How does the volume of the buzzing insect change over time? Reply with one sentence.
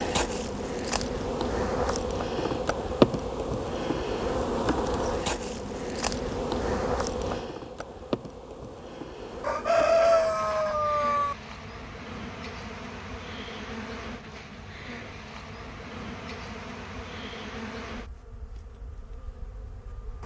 The volume of the buzzing insect goes down.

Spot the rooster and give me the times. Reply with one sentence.
The rooster can be heard from 9.4 to 11.3 s.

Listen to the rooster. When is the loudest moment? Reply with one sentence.
The volume of the rooster peaks at 10 seconds.